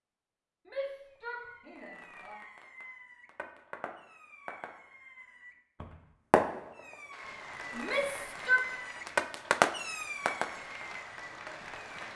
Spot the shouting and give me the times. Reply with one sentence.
The shouting can be heard from 0.7 to 2.4 s and from 7.7 to 8.7 s.